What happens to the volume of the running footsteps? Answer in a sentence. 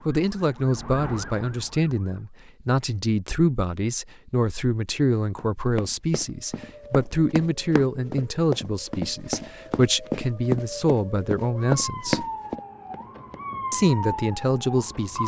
The volume of the running footsteps goes up.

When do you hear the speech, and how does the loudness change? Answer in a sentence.
The speech can be heard from 0.1 to 12.2 s, at a steady volume; and briefly from 13.7 to 15.2 s.